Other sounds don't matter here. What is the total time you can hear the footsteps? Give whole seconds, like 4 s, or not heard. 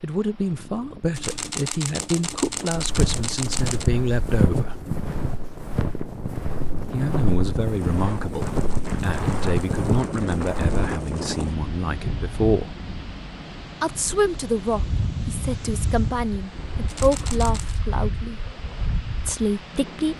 8 s.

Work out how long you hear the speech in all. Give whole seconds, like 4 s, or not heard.
16 s.